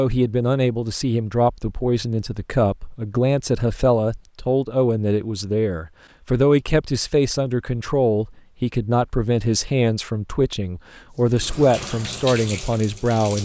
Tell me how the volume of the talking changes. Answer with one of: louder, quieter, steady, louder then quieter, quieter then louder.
steady.